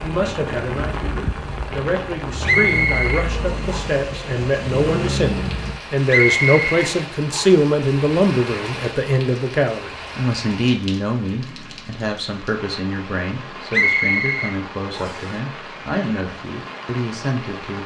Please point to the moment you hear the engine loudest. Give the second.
5 s.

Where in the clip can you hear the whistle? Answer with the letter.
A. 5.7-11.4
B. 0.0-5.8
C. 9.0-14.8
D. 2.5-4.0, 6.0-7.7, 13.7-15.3
D.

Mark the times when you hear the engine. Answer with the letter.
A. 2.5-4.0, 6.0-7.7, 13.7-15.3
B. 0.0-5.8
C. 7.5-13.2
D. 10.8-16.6
B.